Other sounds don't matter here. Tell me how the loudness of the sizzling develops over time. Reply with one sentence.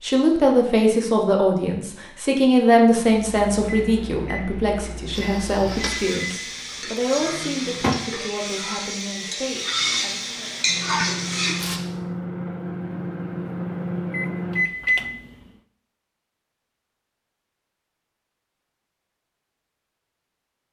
The loudness of the sizzling goes up.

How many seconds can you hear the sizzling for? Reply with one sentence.
The sizzling can be heard for 7 seconds in total.